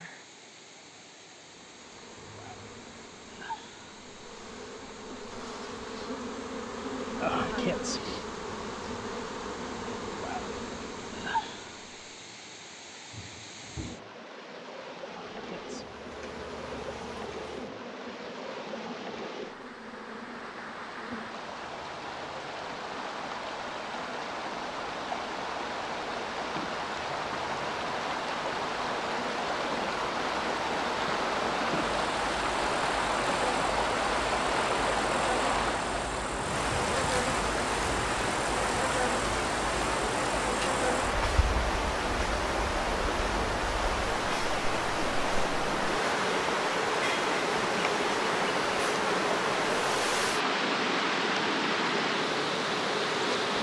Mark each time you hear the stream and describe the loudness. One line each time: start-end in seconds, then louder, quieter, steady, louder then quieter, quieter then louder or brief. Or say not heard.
0.0-53.5 louder.